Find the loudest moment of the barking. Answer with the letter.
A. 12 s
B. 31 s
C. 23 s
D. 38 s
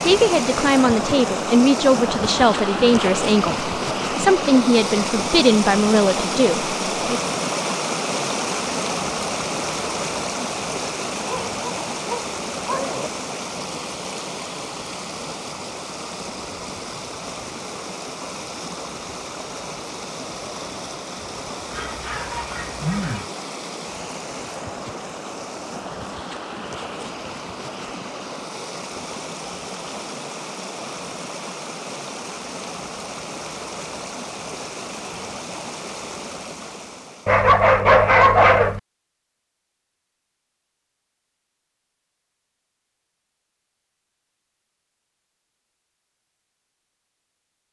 D.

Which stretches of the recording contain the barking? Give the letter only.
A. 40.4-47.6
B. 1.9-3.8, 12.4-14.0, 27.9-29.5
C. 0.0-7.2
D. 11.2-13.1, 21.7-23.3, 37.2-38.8
D.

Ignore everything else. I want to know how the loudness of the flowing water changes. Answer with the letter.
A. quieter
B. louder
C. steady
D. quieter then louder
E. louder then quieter
A.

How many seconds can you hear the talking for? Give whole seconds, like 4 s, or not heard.
7 s.